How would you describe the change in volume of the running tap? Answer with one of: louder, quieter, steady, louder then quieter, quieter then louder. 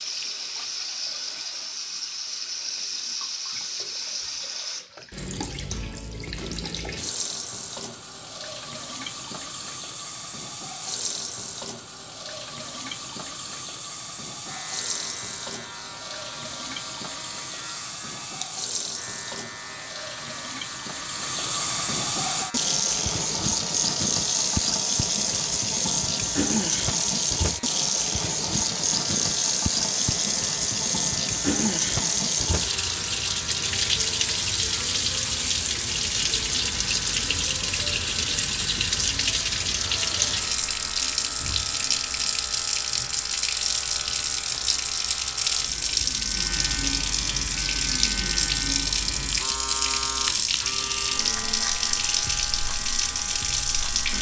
louder.